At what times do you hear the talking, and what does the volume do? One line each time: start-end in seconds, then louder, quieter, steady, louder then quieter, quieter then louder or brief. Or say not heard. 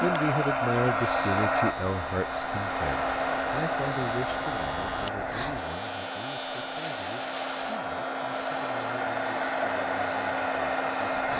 0.0-11.2 quieter.